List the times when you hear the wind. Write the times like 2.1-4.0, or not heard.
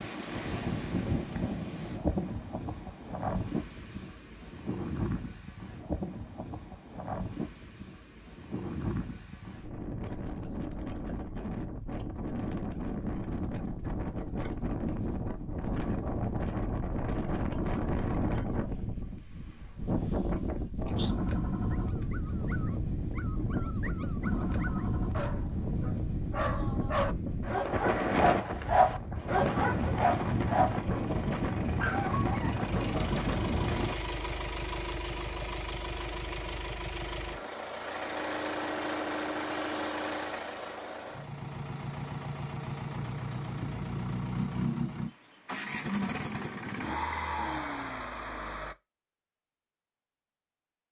0.0-34.0.